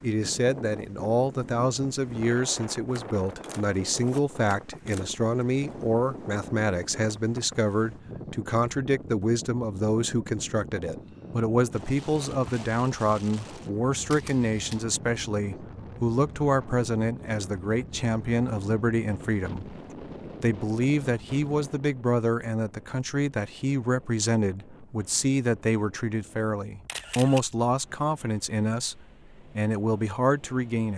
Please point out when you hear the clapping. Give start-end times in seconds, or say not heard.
not heard.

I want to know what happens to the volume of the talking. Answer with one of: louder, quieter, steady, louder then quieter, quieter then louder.
steady.